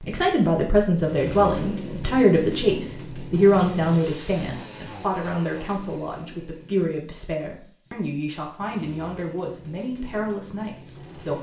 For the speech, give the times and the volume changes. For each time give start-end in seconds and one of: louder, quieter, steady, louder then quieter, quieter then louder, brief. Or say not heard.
0.0-11.3 quieter.